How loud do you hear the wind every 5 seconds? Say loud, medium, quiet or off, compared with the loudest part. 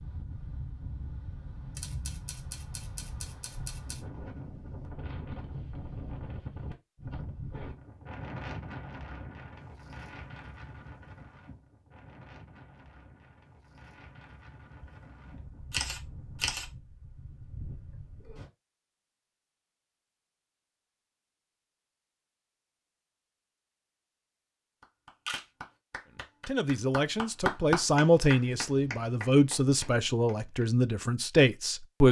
loud, loud, medium, medium, off, off, off.